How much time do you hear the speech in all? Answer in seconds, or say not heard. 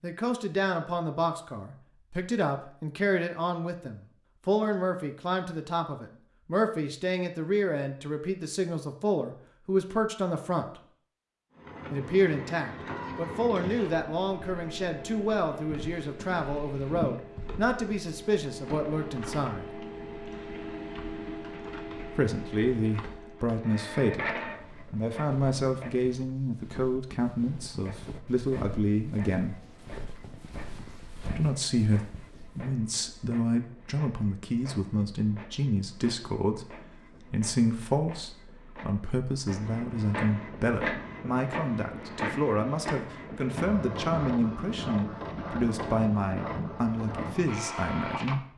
43 s.